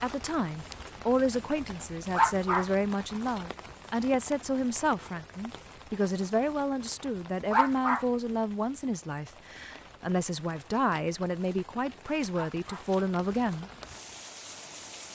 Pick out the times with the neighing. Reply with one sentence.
You can't hear the neighing here.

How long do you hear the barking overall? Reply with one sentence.
The barking can be heard for 2 seconds in total.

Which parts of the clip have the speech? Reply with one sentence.
The speech can be heard from 0.0 to 13.7 s.